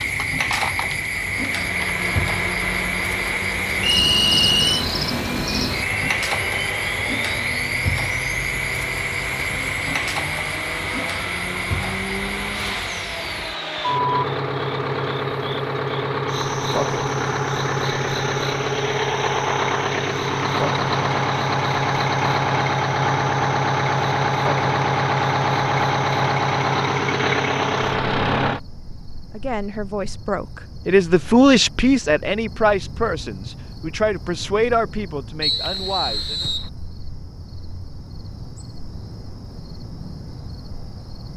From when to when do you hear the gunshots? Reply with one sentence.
The gunshots can't be heard in this clip.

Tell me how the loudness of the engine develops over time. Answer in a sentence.
The loudness of the engine goes up.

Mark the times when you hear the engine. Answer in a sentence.
The engine can be heard from 0.0 to 28.6 s.